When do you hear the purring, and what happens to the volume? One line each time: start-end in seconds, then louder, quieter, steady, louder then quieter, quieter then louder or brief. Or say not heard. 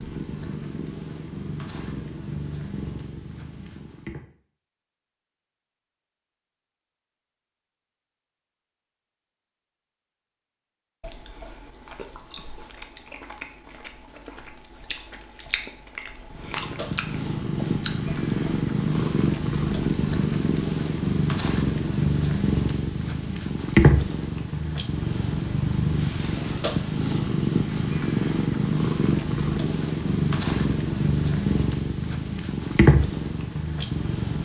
0.0-4.2 quieter
16.2-34.3 steady.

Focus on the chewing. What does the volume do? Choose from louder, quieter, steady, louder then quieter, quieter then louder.
louder.